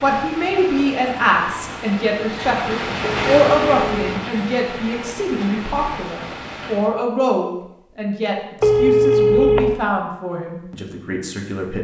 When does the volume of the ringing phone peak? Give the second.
9 s.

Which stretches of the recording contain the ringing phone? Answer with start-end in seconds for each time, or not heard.
3.0-4.0, 8.6-9.7.